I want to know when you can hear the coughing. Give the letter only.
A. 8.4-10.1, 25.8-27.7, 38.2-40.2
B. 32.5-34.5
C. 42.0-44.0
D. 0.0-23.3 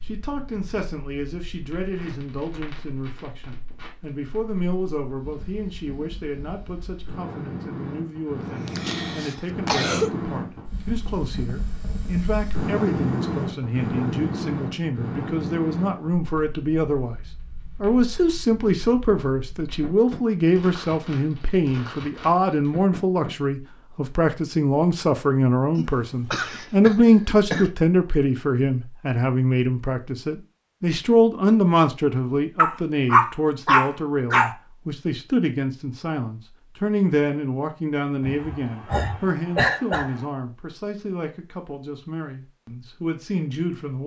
A.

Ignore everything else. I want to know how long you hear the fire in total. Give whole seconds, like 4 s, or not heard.
23 s.